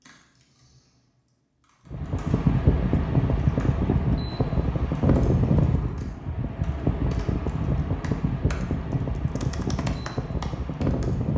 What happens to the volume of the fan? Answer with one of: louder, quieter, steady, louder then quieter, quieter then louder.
quieter.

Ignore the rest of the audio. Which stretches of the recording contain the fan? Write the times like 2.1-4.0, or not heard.
1.9-11.3.